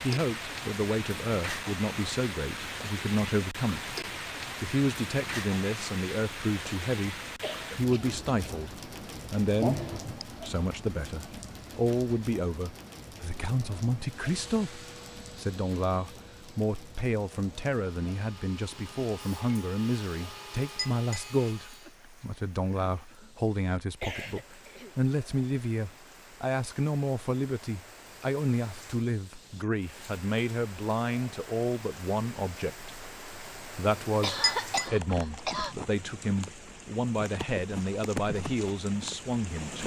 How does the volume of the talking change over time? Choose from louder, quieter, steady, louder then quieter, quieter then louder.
steady.